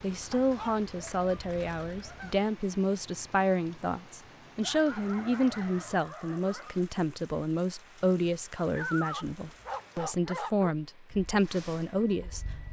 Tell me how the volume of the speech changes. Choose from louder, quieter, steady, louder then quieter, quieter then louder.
steady.